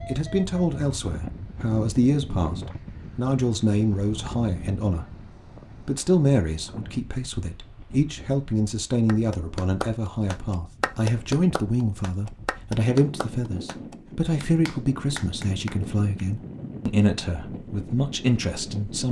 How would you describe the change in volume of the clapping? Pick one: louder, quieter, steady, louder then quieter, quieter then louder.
quieter.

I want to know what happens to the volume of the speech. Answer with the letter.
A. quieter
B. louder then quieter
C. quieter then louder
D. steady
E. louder
D.